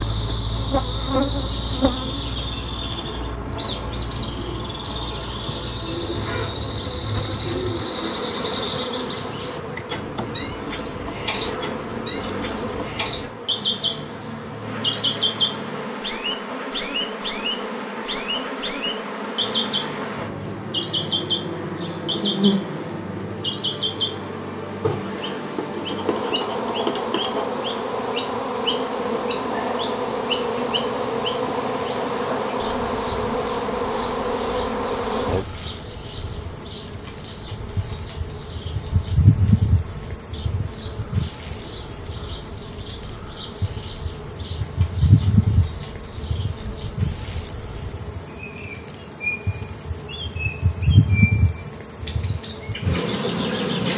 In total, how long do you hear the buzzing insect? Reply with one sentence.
You can hear the buzzing insect for 54 seconds altogether.